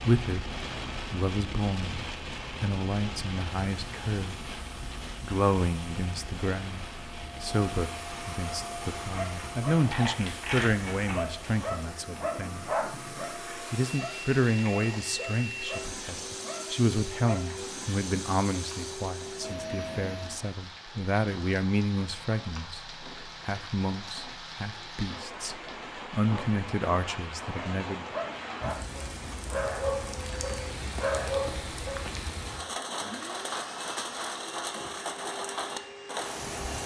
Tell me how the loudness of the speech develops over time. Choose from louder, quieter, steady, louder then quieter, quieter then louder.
steady.